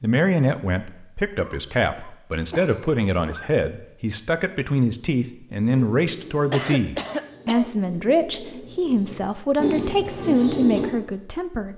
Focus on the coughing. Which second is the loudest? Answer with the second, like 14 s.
7 s.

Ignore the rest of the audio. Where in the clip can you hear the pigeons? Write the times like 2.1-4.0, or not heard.
5.7-10.9.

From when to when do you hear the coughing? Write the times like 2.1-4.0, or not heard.
1.4-3.5, 6.5-7.7.